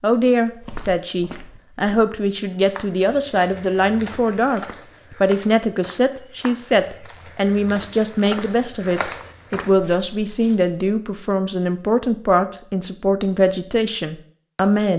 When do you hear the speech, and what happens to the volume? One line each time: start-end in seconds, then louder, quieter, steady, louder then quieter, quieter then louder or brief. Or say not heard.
0.0-14.9 steady.